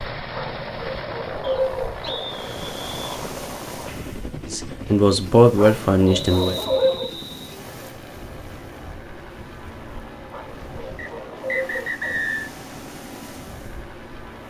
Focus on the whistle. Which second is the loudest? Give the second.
12 s.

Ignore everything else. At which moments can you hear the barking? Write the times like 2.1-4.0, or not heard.
0.3-2.3, 5.5-7.1, 10.3-12.2.